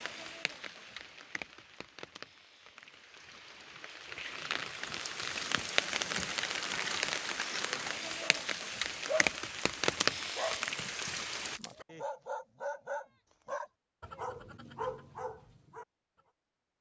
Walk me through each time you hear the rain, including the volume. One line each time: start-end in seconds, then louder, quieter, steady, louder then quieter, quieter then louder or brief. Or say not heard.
0.0-11.6 louder.